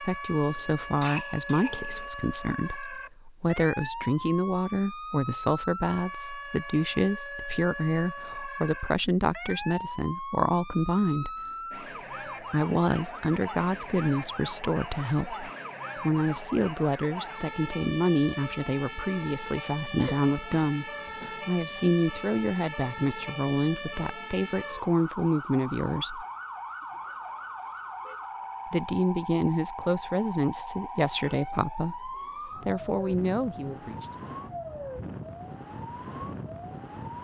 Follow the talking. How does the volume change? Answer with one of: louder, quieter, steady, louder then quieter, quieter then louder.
steady.